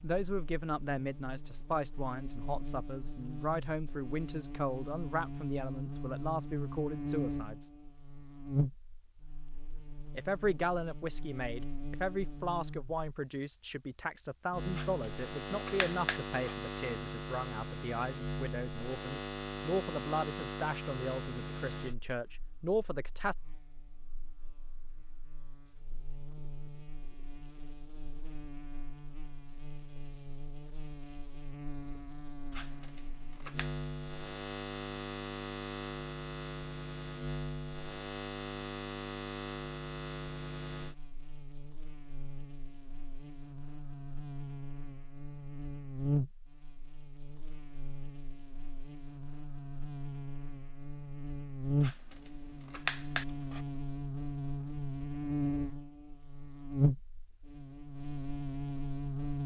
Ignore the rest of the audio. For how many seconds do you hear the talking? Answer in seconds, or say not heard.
21 s.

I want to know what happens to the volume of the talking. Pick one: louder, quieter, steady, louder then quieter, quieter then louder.
steady.